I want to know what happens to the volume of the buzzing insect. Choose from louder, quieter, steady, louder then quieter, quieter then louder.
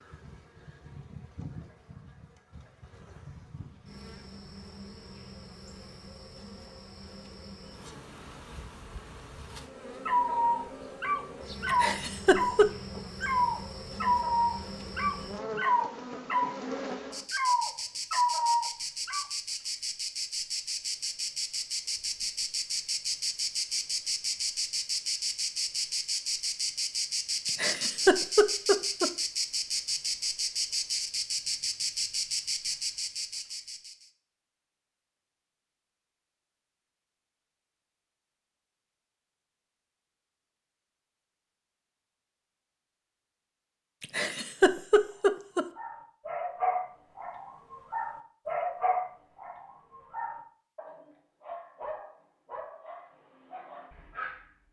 louder.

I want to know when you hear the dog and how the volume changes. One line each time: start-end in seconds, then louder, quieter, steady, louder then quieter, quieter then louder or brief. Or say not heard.
10.1-19.2 steady
45.0-54.5 quieter.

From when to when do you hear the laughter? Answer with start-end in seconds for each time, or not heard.
11.7-12.7, 27.4-29.1, 44.0-45.6.